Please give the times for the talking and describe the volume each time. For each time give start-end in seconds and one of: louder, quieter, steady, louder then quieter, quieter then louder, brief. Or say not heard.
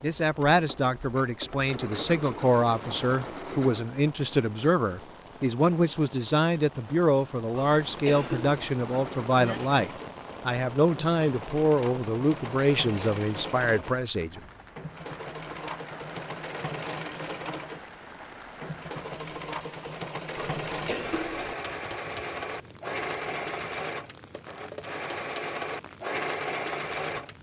0.0-14.4 steady.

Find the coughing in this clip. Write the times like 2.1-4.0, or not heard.
7.5-8.8, 20.4-21.6.